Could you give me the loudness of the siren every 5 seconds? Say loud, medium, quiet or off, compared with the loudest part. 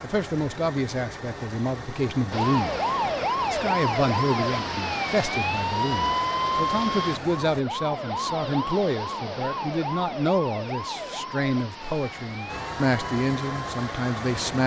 loud, loud, medium.